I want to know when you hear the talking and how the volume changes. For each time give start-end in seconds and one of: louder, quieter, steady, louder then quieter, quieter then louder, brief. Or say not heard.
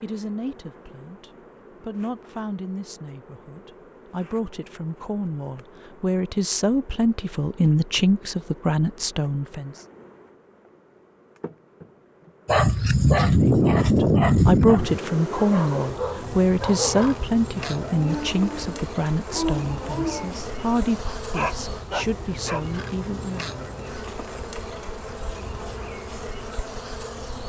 0.0-9.8 louder
13.3-23.5 quieter.